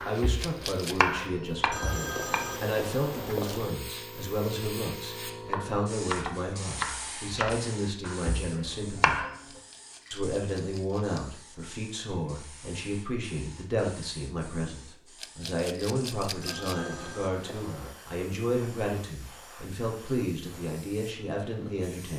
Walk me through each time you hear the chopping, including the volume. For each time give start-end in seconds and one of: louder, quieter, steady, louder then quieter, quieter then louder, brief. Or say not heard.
0.0-2.5 brief
5.3-9.3 quieter.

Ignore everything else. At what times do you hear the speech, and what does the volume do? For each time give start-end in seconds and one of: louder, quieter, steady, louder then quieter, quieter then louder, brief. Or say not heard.
0.1-9.2 steady
10.1-22.1 steady.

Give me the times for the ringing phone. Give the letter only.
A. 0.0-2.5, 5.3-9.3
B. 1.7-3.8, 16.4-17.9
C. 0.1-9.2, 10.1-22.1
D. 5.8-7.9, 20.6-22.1
B.